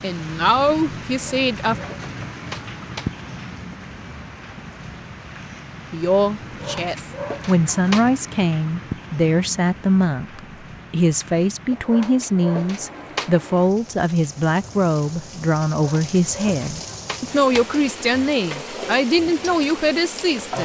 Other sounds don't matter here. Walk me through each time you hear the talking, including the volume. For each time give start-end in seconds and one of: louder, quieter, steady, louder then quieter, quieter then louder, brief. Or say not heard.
0.0-1.8 brief
5.9-20.6 steady.